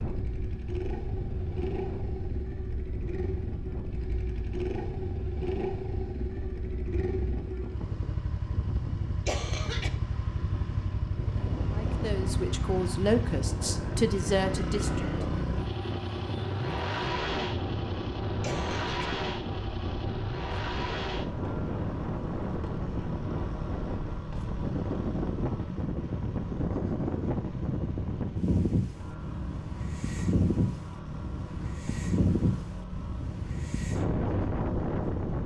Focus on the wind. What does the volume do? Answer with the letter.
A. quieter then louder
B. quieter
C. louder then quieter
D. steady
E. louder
E.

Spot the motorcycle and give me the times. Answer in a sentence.
You can hear the motorcycle from 0.0 to 35.4 s.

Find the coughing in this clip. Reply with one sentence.
You can hear the coughing from 9.2 to 9.9 s and from 18.4 to 19.1 s.